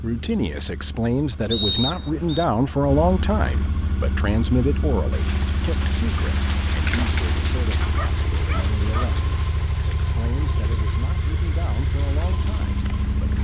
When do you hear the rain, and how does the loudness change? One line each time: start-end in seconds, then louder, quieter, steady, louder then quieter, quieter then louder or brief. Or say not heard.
5.1-13.3 quieter.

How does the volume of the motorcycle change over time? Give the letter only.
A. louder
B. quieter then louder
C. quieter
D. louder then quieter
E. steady
A.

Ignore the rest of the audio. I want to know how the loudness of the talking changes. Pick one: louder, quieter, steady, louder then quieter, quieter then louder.
quieter.